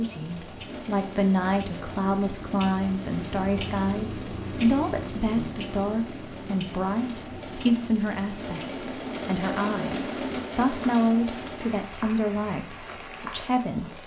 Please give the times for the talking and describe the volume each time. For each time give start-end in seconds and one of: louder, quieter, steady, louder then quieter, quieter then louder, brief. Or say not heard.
0.0-14.0 steady.